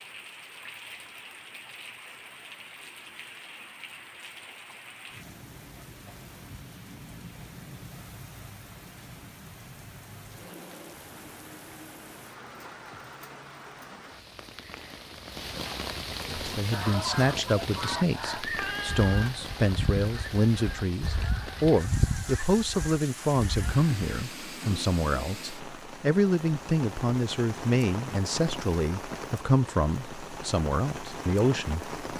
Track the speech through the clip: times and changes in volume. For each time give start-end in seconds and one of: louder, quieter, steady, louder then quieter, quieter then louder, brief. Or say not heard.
16.4-31.9 steady.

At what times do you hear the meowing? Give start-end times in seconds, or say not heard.
18.6-19.5.